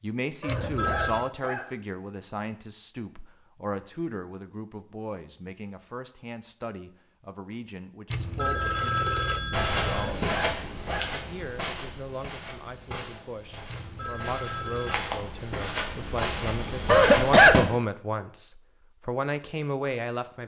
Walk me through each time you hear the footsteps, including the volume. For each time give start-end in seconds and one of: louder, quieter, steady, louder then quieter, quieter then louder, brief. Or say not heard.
9.5-17.6 quieter then louder.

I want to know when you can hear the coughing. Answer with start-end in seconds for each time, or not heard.
0.4-1.6, 9.8-11.1, 16.9-17.6.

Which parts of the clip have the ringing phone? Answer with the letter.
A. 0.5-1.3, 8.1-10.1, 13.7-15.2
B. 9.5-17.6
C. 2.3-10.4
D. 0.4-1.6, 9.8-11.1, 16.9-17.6
A.